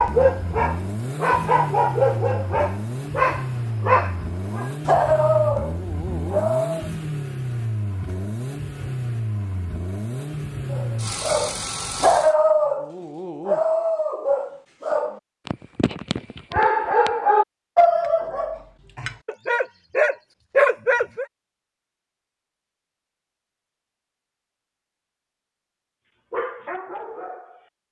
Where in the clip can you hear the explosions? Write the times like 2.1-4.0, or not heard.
not heard.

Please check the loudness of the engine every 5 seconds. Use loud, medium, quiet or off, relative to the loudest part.
loud, loud, loud, off, off, off.